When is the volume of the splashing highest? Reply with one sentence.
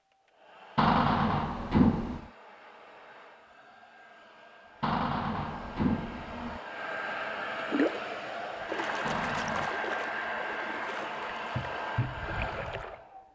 The loudest moment of the splashing is at 8 seconds.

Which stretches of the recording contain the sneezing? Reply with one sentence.
You can't hear the sneezing here.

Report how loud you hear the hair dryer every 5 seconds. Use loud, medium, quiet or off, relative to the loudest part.
quiet, loud, loud.